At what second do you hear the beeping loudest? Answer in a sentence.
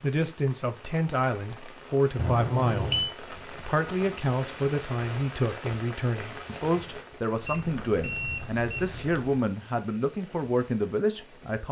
The volume of the beeping peaks at 3 seconds.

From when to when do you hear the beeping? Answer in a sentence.
You can hear the beeping from 2.1 to 3.1 s and from 7.4 to 9.3 s.